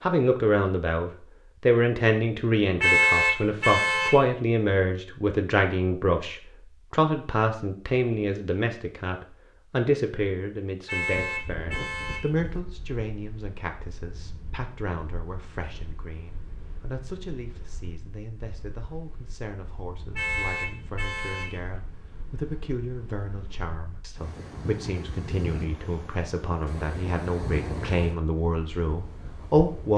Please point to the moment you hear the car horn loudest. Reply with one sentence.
The volume of the car horn peaks at 3 seconds.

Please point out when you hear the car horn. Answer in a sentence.
The car horn can be heard from 2.8 to 4.2 s, from 10.8 to 12.3 s and from 20.1 to 21.6 s.